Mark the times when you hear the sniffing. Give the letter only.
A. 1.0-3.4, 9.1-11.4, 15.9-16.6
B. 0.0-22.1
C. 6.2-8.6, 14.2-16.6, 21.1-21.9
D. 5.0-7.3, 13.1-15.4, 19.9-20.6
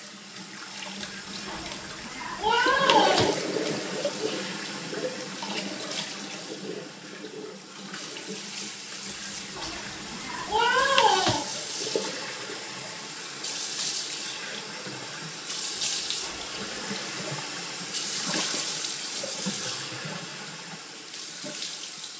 A.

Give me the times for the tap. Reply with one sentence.
You can hear the tap from 0.0 to 22.1 s.